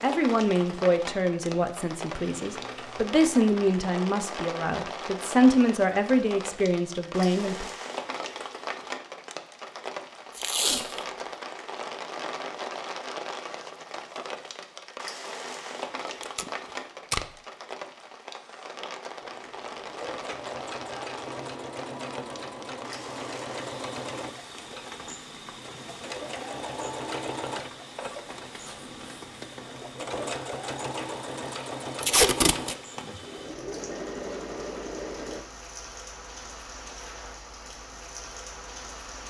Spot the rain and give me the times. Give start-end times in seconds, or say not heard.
0.0-39.2.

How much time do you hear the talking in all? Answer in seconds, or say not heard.
8 s.